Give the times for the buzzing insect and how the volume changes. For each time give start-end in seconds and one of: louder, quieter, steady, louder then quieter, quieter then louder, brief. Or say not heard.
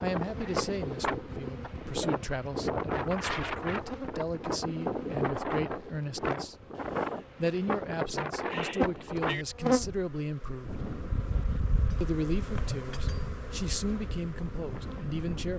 0.0-15.5 louder then quieter.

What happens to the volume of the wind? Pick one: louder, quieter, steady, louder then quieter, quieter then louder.
quieter.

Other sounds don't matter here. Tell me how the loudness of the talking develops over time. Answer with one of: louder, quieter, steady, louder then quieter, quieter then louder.
steady.